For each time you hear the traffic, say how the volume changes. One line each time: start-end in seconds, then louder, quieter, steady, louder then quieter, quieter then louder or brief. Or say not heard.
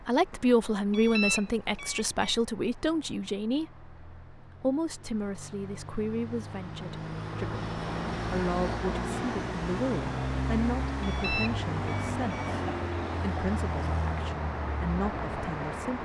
0.0-16.0 louder.